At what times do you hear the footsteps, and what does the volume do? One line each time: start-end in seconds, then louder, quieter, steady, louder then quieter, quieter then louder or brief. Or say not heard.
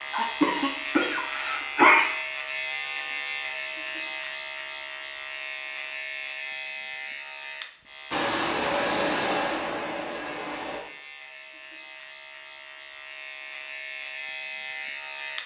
not heard.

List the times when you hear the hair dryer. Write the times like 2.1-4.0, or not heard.
8.1-10.8.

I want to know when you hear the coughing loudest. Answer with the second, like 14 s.
2 s.